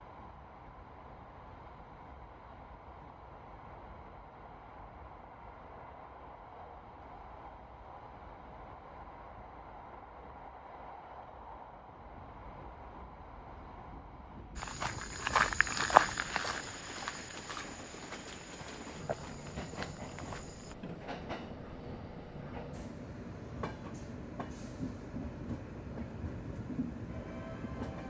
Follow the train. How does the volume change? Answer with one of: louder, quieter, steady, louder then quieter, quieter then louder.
louder.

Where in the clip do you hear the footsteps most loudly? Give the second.
16 s.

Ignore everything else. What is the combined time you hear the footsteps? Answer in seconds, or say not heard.
6 s.